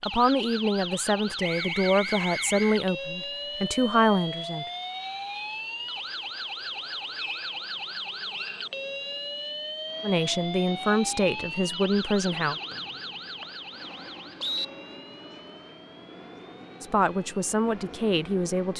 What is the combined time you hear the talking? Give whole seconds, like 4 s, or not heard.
9 s.